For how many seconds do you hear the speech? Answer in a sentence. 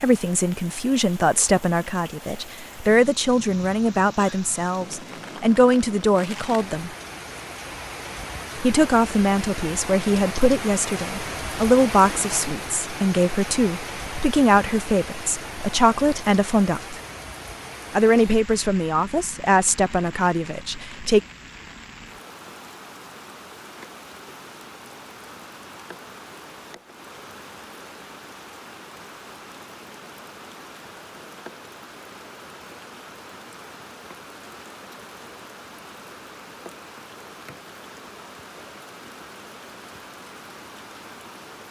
The speech can be heard for 19 seconds in total.